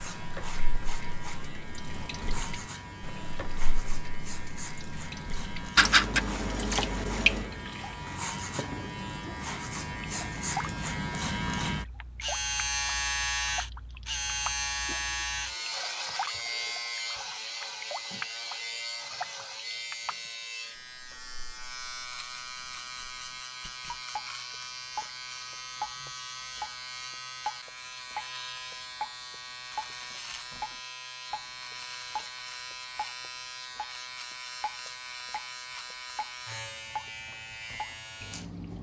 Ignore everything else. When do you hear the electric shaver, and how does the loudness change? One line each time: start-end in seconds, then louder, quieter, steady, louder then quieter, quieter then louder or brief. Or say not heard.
0.0-38.7 louder then quieter.